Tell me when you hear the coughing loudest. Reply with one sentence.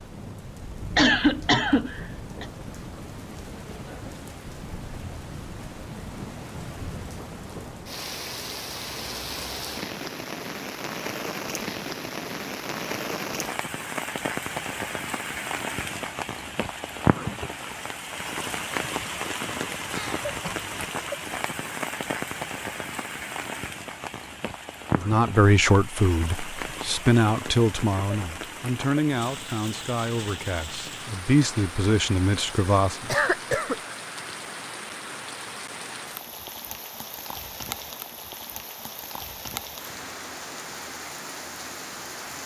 The volume of the coughing peaks at 1 second.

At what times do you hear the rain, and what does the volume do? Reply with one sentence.
You can hear the rain from 0.0 to 42.4 s, getting louder then quieter.